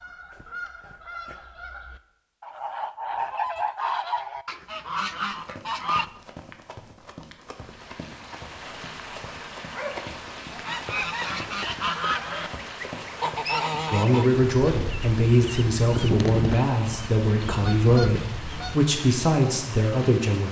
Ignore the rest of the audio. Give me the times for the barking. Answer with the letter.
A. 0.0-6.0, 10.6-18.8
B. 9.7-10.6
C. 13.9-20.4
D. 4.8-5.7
B.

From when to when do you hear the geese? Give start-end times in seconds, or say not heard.
0.0-6.0, 10.6-18.8.